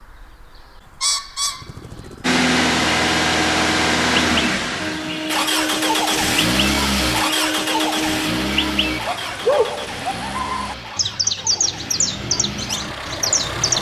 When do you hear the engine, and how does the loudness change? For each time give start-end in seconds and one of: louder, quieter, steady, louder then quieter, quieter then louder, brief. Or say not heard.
2.2-13.7 quieter.